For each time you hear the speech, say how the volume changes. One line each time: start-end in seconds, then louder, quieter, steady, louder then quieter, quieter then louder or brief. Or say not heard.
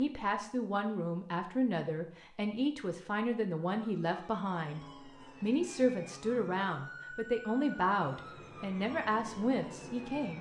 0.0-10.3 steady.